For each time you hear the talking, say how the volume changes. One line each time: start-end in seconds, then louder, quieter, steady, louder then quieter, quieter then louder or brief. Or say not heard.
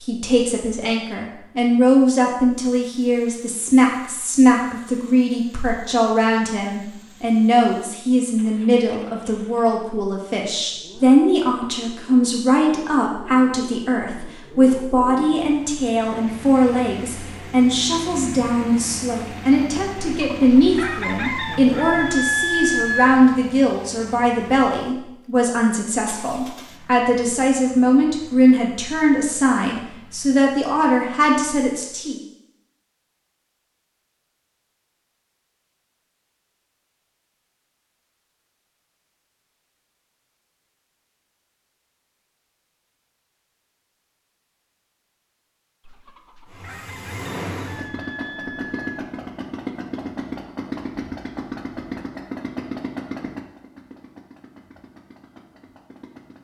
0.0-32.1 steady.